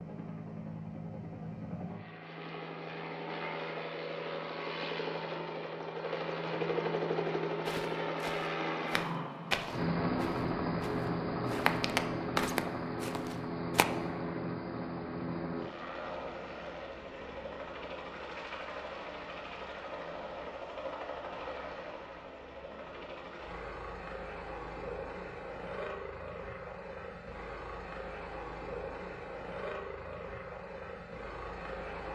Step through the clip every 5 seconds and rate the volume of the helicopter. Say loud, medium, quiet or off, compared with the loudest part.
medium, loud, loud, medium, medium, medium, medium.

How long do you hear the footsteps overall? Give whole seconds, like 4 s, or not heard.
6 s.